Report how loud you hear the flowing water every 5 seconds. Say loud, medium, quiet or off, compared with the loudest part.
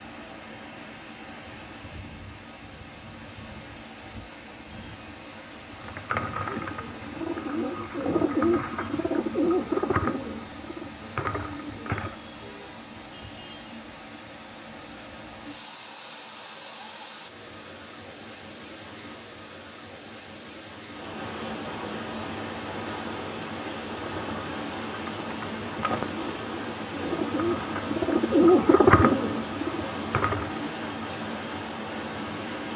medium, medium, medium, medium, loud, loud, loud.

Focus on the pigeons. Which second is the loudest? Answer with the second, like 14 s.
29 s.